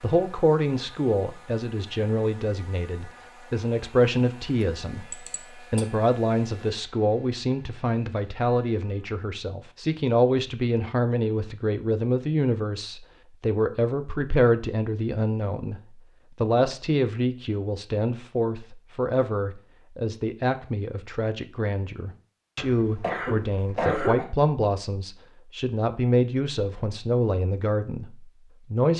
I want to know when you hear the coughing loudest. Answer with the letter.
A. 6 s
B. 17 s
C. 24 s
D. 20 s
C.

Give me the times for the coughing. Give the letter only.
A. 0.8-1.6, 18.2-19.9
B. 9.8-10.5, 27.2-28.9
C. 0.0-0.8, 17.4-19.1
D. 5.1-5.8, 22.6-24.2
D.